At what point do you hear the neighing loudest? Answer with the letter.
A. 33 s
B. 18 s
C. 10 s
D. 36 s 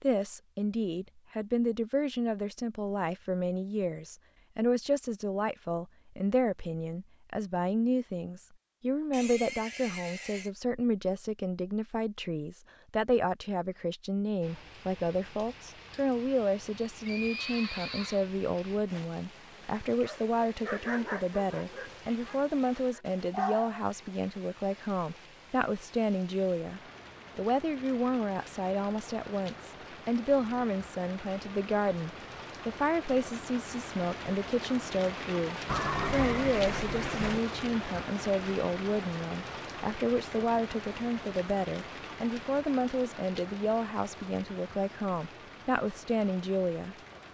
D.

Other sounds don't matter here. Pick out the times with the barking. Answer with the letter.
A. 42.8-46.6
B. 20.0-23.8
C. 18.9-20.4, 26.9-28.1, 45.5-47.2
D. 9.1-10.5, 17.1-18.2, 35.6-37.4
B.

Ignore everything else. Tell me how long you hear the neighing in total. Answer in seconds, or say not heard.
4 s.